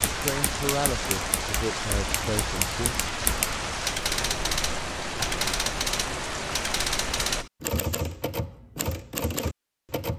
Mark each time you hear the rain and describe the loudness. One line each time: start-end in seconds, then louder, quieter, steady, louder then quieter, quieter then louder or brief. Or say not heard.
0.0-7.5 steady.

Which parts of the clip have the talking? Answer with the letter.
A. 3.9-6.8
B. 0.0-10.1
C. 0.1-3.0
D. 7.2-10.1
C.